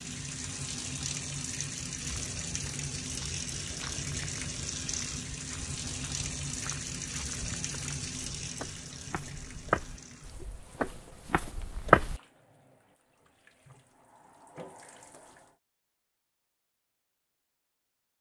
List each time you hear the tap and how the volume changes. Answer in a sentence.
You can hear the tap from 0.0 to 15.6 s, getting quieter.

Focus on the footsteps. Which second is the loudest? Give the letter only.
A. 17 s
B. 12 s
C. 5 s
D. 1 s
B.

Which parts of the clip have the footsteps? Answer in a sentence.
You can hear the footsteps from 2.0 to 12.2 s.